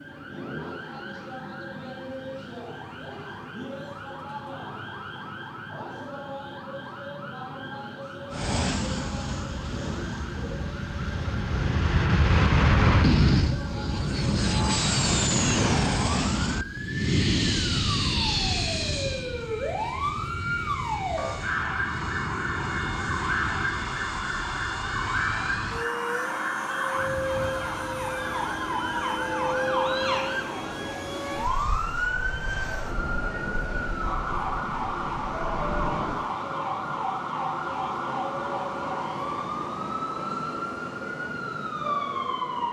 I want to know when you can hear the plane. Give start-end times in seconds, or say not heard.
8.3-36.3.